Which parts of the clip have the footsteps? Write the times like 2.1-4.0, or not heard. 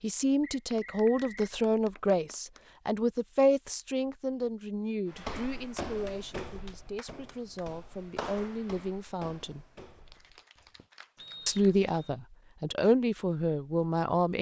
5.1-10.8.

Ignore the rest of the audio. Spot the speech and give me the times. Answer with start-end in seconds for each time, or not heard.
0.0-9.7, 11.4-14.3.